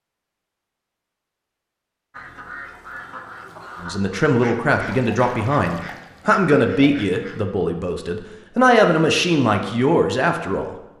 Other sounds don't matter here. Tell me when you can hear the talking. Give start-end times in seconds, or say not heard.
3.8-10.8.